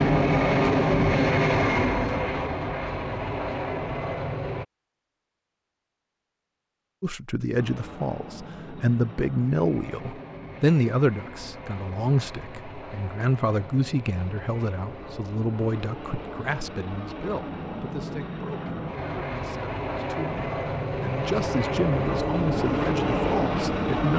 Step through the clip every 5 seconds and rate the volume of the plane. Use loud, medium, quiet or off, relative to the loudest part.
loud, quiet, quiet, medium, loud.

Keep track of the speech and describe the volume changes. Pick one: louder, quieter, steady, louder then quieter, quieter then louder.
quieter then louder.